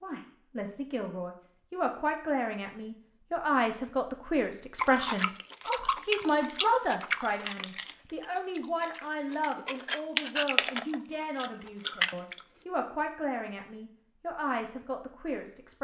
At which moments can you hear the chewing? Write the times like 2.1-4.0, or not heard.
4.8-12.4.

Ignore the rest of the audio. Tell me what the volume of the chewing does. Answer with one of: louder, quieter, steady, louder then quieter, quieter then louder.
quieter then louder.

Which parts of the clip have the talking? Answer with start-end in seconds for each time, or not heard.
0.0-15.7.